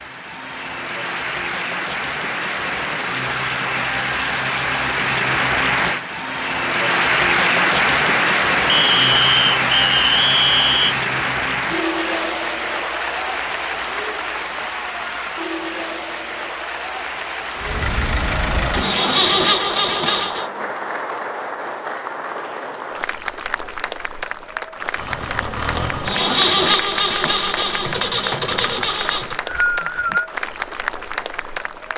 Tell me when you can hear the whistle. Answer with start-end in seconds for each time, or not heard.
8.7-10.9, 29.1-30.3.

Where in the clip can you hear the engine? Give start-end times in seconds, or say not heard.
17.6-20.4, 24.9-29.4.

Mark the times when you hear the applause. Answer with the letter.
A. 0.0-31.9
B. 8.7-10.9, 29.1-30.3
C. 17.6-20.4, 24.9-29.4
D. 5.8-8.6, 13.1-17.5
A.